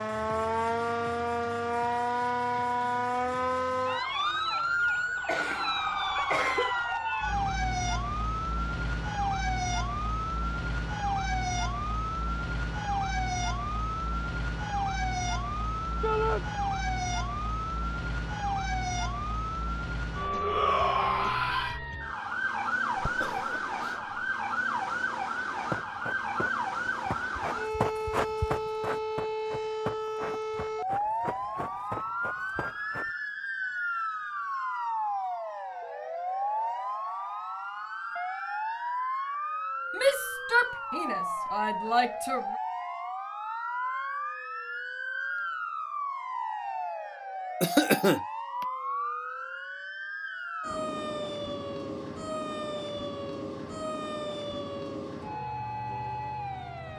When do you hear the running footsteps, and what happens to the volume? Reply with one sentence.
You can hear the running footsteps from 25.7 to 33.1 s, getting louder then quieter.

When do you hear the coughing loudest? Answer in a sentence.
The loudest moment of the coughing is at 48 seconds.